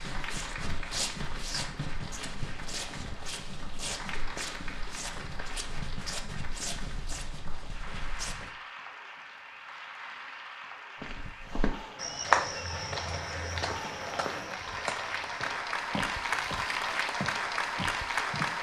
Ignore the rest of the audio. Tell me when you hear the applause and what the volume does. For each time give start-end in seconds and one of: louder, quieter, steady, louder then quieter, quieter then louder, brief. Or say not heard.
0.0-18.5 louder.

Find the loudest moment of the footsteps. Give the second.
12 s.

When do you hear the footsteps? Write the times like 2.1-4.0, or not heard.
0.0-8.6, 11.0-18.5.